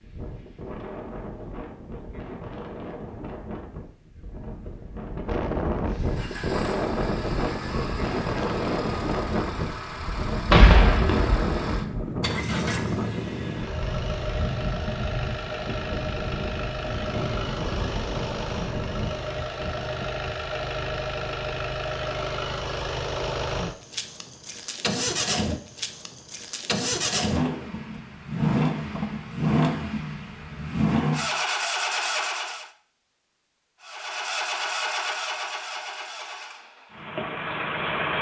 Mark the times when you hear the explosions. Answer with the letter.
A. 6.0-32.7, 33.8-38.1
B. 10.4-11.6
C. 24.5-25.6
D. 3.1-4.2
B.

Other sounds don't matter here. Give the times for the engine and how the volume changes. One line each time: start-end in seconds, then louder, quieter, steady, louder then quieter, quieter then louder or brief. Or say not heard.
6.0-32.7 louder
33.8-38.1 quieter then louder.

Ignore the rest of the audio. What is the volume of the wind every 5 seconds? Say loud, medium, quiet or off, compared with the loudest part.
medium, loud, loud, medium, off, off, off, off.